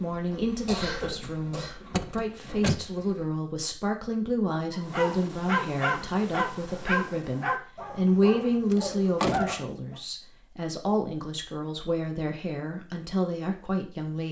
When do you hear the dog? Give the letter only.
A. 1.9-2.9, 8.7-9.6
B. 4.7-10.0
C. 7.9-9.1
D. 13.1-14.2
B.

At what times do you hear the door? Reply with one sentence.
You can hear the door from 1.9 to 2.9 s and from 8.7 to 9.6 s.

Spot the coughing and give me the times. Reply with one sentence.
You can hear the coughing from 0.7 to 1.9 s.